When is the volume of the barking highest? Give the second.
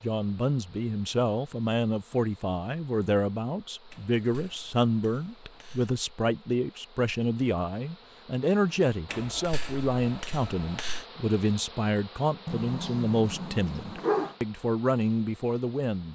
14 s.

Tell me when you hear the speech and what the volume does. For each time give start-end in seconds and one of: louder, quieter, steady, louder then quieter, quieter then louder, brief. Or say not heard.
0.0-16.1 steady.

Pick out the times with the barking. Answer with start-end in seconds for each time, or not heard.
12.4-14.3.